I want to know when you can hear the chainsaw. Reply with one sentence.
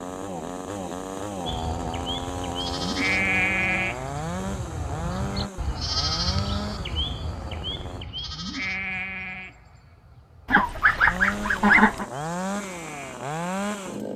The chainsaw can be heard from 0.0 to 8.1 s and from 11.0 to 14.1 s.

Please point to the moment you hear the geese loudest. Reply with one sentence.
The volume of the geese peaks at 12 seconds.